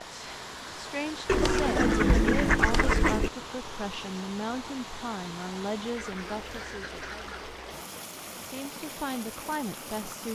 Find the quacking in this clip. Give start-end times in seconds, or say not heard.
1.2-3.3, 6.0-7.3.